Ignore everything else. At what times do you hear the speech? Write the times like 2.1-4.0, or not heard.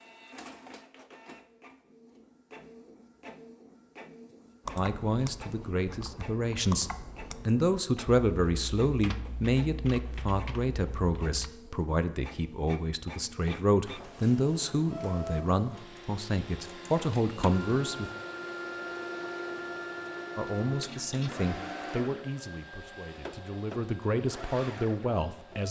4.8-18.1, 20.4-25.6.